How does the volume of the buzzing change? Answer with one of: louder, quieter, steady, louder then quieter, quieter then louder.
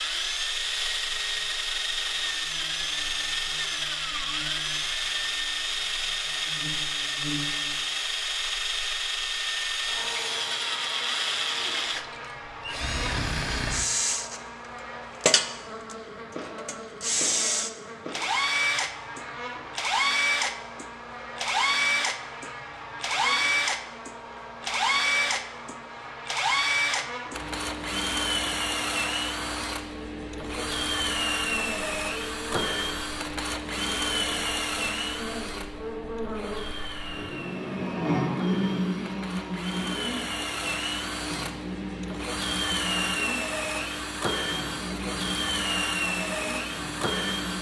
louder.